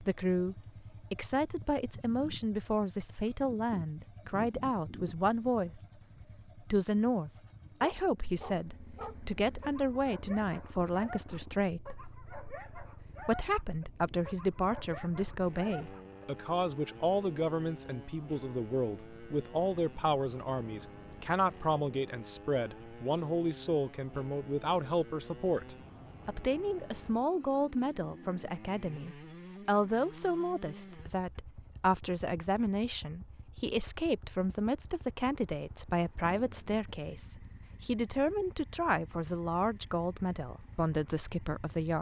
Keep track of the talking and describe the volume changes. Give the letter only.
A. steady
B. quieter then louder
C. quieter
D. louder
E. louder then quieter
A.